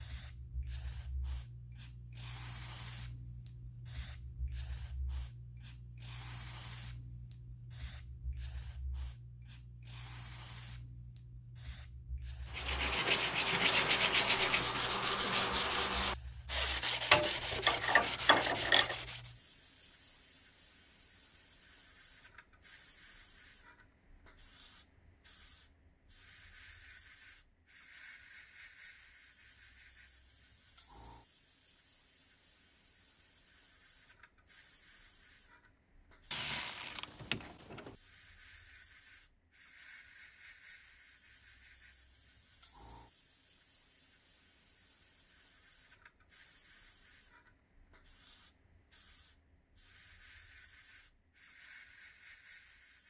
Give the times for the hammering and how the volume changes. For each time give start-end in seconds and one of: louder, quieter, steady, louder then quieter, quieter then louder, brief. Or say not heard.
not heard.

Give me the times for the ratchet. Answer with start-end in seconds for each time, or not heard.
17.1-18.9, 36.3-38.0.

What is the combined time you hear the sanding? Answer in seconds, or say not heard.
7 s.